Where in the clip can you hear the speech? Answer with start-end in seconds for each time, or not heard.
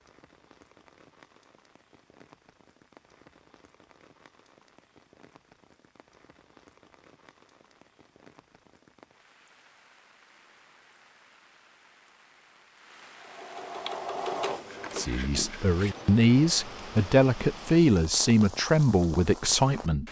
14.9-20.0.